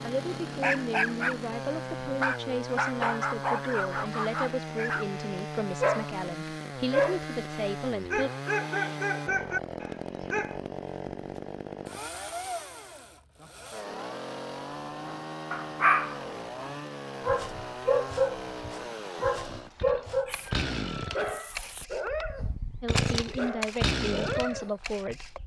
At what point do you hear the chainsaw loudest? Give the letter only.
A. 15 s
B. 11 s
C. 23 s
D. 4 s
C.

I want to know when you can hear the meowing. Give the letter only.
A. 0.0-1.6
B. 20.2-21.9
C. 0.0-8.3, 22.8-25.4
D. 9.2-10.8
B.